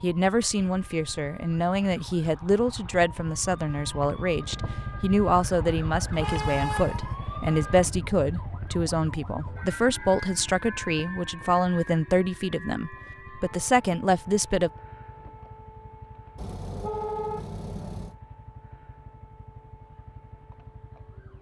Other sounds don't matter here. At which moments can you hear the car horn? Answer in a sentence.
The car horn can be heard from 6.1 to 7.2 s and from 16.4 to 18.1 s.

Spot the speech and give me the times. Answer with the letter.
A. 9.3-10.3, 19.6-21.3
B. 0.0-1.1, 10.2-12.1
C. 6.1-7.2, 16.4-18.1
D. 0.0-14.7
D.